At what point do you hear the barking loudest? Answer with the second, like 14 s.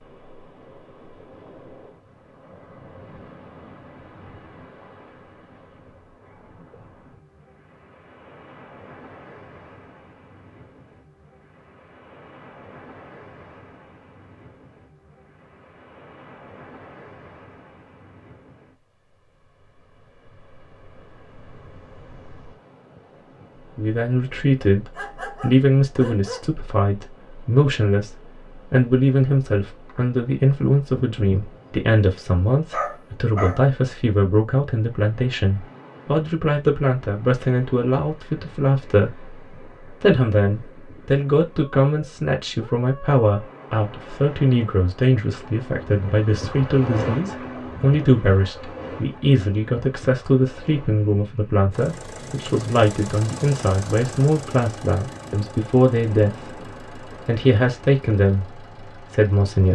33 s.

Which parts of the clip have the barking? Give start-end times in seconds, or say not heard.
24.9-26.5, 32.7-33.6.